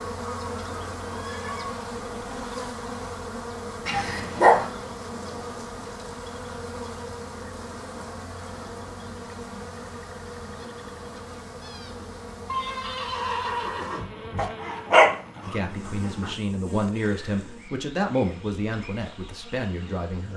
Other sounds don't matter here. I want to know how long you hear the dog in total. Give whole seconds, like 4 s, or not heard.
3 s.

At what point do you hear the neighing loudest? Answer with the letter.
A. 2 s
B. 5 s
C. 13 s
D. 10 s
C.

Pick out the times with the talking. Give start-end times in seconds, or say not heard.
15.4-20.3.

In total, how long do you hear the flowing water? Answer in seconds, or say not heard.
not heard.